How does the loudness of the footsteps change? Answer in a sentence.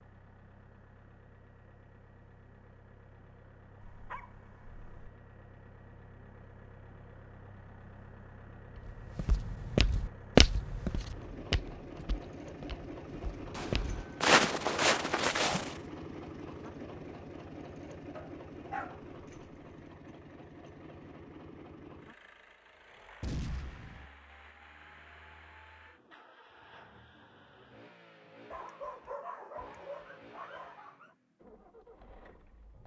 The volume of the footsteps goes down, then up.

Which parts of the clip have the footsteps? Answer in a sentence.
The footsteps can be heard from 8.8 to 15.8 s.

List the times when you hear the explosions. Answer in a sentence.
The explosions can be heard from 13.5 to 14.3 s and from 23.2 to 24.1 s.